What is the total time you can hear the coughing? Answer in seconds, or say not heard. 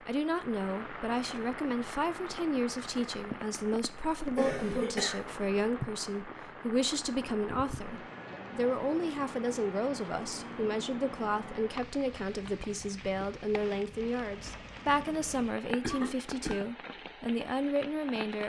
2 s.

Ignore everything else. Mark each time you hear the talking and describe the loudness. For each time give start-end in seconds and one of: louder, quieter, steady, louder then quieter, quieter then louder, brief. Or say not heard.
0.1-18.4 steady.